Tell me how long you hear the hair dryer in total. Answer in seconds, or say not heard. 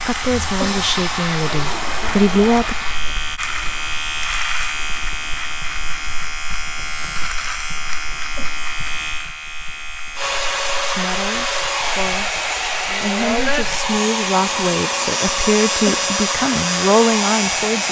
11 s.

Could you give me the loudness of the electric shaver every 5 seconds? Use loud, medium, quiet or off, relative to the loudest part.
loud, loud, medium, loud.